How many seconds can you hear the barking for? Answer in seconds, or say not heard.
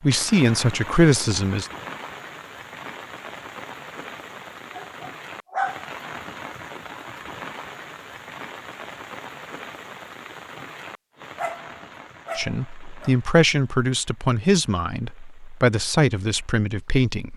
3 s.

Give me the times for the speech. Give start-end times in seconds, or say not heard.
0.0-1.7, 12.3-17.3.